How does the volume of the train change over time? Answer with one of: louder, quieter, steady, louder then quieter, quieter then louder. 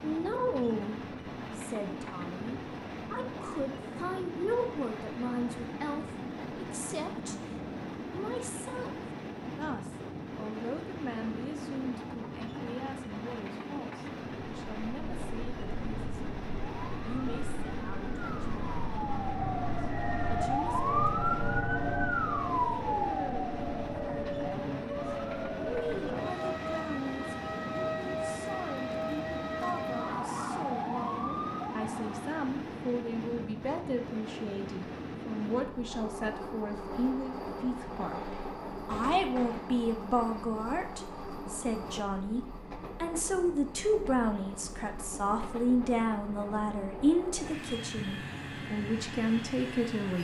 steady.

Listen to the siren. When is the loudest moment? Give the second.
21 s.